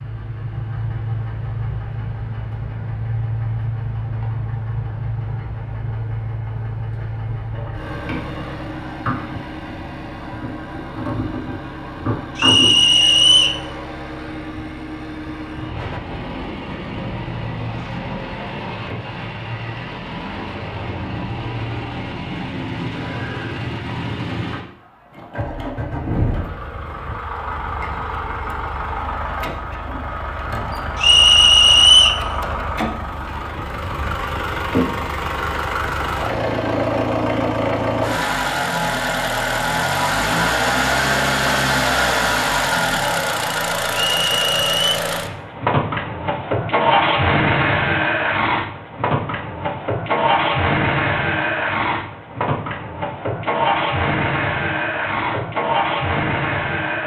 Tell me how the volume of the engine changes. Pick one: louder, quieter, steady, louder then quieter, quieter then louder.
louder.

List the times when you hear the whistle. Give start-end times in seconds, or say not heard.
12.3-13.6, 31.0-32.2, 43.9-45.0.